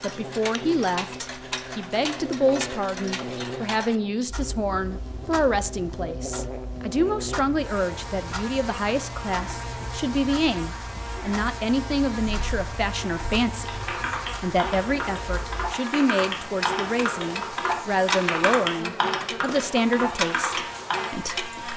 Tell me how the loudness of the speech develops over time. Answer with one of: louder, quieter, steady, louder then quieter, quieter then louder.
steady.